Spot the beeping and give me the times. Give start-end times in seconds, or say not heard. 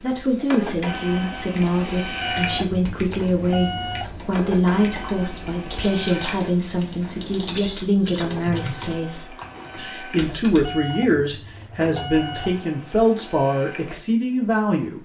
2.2-4.2, 10.7-12.7.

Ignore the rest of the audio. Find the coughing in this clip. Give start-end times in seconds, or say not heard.
7.5-8.7.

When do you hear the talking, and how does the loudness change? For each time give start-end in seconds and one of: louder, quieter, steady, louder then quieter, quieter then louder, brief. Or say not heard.
0.0-14.9 steady.